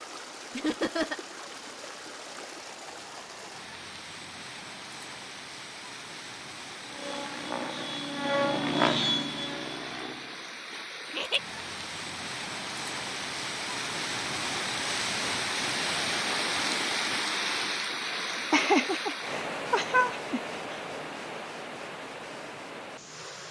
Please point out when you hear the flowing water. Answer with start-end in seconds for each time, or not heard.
0.0-23.4.